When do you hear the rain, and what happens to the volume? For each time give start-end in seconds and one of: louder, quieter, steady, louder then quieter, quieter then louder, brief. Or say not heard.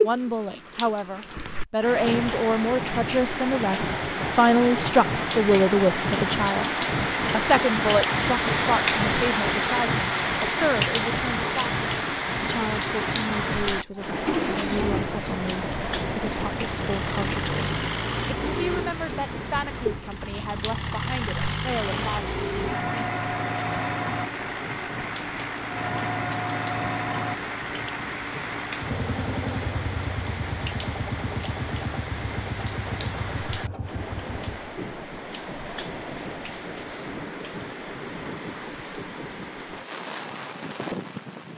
0.0-41.5 quieter.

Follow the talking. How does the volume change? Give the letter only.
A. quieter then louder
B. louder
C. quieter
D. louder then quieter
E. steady
C.